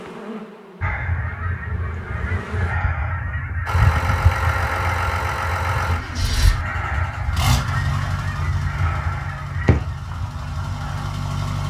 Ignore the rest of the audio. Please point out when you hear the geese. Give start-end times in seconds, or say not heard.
0.8-11.1.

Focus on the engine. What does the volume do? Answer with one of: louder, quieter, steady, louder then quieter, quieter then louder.
quieter.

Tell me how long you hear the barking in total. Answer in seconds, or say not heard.
not heard.